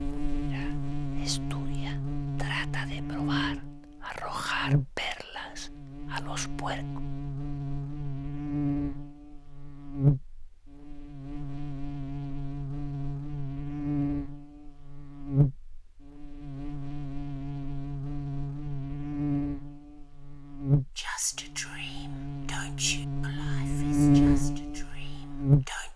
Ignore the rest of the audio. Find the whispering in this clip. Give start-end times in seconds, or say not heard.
0.5-7.0, 20.9-25.9.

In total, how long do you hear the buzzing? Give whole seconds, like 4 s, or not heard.
26 s.